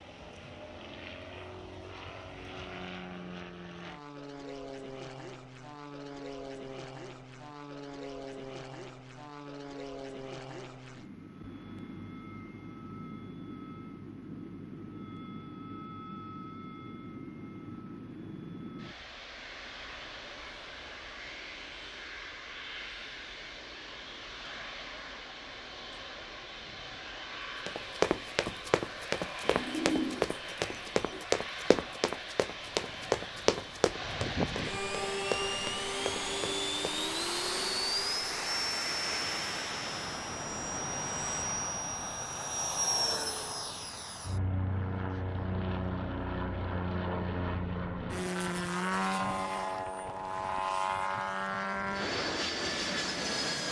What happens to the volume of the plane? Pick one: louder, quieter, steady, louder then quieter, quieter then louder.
louder.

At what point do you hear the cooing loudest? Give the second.
30 s.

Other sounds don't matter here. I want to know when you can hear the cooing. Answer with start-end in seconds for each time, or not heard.
29.4-31.2.